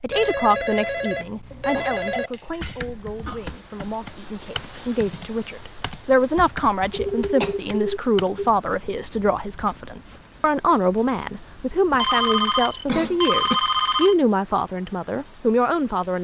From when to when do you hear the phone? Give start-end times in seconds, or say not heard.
0.1-2.3, 6.9-8.5, 11.9-14.2.